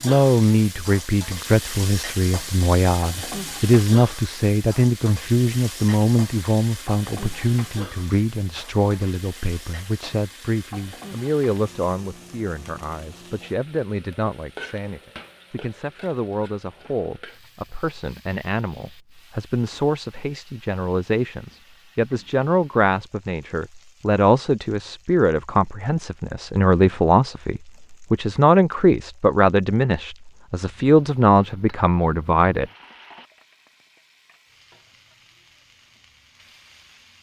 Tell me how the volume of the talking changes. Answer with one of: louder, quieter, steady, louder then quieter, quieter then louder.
quieter then louder.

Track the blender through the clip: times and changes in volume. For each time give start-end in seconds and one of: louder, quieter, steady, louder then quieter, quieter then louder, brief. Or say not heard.
not heard.